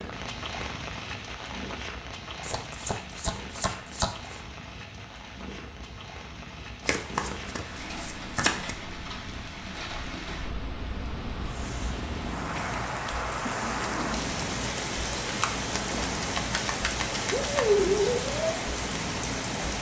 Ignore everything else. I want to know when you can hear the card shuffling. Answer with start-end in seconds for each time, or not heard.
2.4-4.4, 6.8-8.8, 15.2-17.6.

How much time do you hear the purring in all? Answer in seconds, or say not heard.
20 s.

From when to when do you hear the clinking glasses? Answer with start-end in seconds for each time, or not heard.
not heard.